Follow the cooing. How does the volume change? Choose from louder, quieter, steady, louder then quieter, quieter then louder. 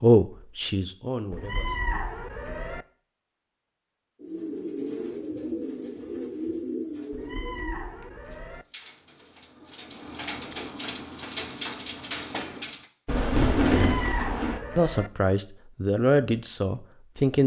quieter then louder.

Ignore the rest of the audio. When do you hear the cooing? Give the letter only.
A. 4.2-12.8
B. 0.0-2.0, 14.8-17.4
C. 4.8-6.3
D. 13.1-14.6
A.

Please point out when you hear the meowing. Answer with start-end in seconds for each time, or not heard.
1.3-2.9, 7.1-8.7, 13.7-15.1.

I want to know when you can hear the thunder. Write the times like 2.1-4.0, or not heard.
13.1-14.6.